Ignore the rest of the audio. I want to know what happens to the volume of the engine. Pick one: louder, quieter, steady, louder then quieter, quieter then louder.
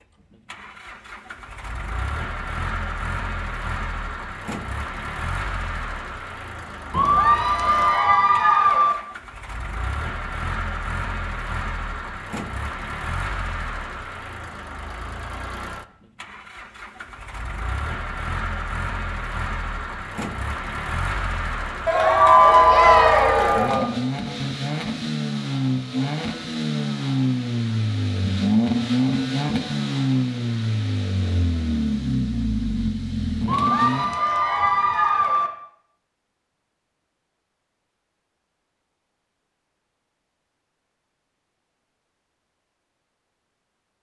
louder.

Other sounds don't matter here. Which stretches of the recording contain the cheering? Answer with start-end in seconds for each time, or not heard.
6.9-8.9, 21.9-23.9, 33.5-35.5.